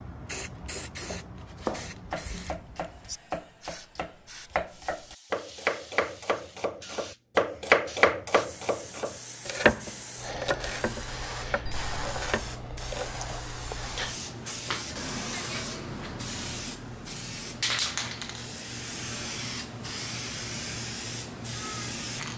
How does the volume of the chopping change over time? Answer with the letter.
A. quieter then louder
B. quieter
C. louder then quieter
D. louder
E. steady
C.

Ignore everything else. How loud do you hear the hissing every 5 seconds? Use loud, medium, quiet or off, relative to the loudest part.
medium, medium, loud, loud, loud.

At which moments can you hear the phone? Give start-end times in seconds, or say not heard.
11.7-12.3.